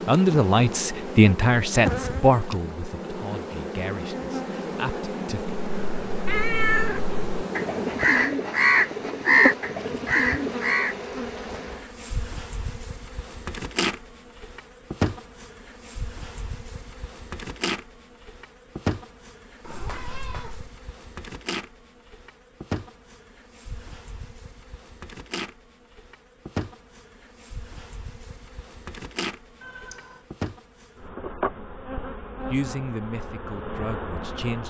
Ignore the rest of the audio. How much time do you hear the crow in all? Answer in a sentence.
You can hear the crow for 5 seconds altogether.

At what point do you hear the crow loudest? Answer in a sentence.
The volume of the crow peaks at 9 seconds.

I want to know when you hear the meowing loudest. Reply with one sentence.
The volume of the meowing peaks at 7 seconds.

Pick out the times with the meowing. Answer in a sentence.
You can hear the meowing from 6.2 to 7.0 s, from 19.6 to 20.7 s and from 29.6 to 30.2 s.